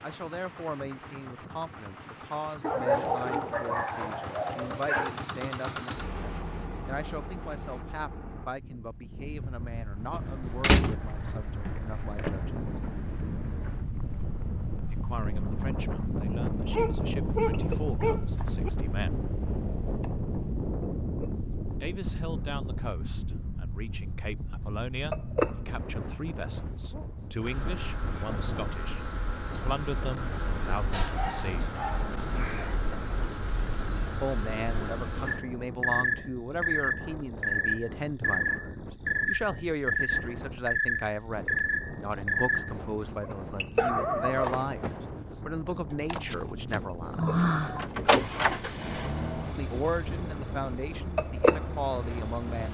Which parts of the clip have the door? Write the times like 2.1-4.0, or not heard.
10.1-10.9, 46.1-48.5.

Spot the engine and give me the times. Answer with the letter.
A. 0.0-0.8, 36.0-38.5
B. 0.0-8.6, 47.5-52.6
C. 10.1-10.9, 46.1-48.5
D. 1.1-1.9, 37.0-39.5
B.